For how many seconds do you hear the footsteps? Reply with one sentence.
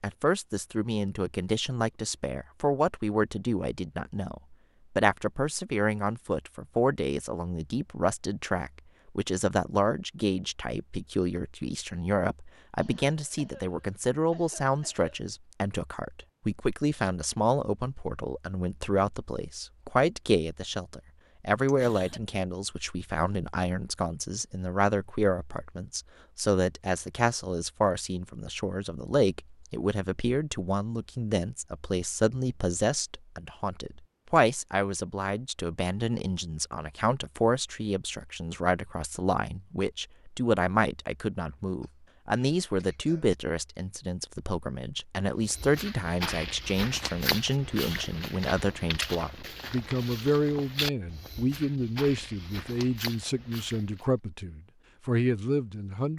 The footsteps can be heard for 9 seconds in total.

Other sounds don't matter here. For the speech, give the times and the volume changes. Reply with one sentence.
The speech can be heard from 0.0 to 56.1 s, at a steady volume.